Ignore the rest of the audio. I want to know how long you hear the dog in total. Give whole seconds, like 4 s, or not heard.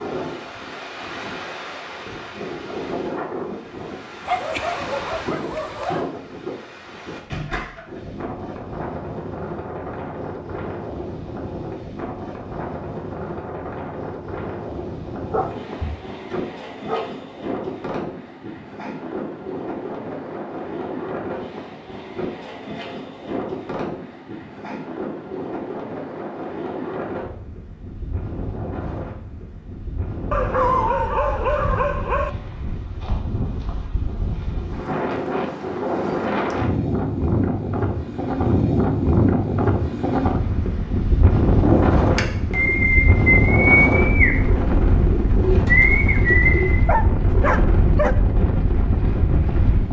7 s.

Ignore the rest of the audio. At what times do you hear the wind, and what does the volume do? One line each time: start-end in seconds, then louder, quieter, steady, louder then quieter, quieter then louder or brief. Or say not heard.
0.0-49.8 louder.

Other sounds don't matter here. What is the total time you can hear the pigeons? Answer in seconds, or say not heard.
5 s.